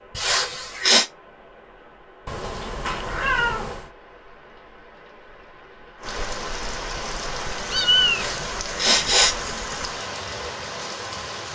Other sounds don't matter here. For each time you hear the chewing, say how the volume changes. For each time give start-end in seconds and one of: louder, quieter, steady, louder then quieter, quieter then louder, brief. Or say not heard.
not heard.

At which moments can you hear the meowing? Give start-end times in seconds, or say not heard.
2.2-3.9, 7.7-8.4.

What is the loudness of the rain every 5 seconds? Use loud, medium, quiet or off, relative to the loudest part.
quiet, loud, loud.